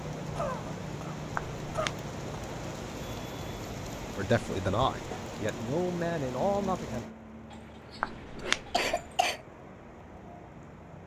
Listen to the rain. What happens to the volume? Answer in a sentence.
The volume of the rain goes down.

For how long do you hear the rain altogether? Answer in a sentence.
You can hear the rain for 11 seconds altogether.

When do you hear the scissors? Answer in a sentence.
You can hear the scissors from 1.4 to 1.9 s and from 8.0 to 8.8 s.